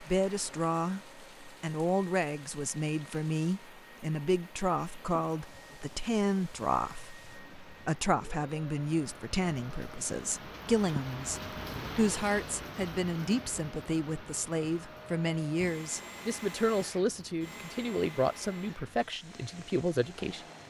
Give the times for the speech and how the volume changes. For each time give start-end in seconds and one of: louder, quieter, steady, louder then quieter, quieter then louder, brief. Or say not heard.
0.0-20.6 steady.